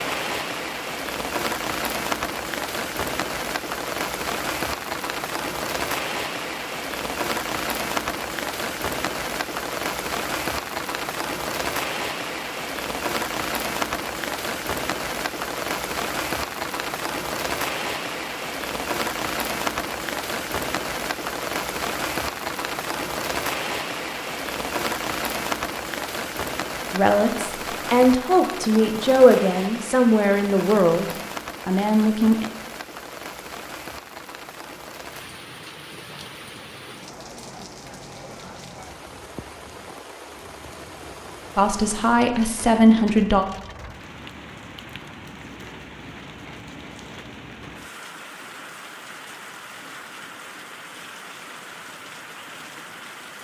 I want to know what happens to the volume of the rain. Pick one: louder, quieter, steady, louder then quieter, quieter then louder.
quieter.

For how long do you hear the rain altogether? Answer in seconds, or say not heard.
53 s.